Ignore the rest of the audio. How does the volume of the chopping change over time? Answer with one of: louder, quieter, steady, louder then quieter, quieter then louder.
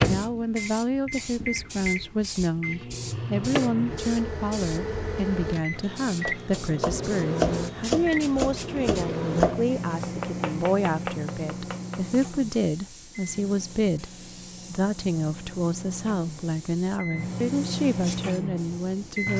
quieter.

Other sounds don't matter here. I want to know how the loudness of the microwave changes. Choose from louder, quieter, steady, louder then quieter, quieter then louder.
quieter then louder.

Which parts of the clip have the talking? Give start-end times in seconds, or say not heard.
0.1-14.1, 14.7-19.3.